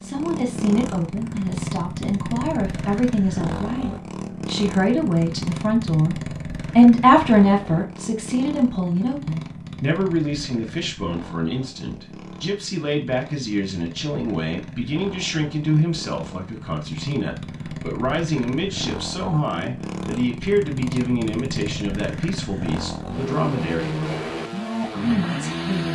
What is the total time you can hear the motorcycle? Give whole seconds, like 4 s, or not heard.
26 s.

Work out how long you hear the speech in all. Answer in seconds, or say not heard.
26 s.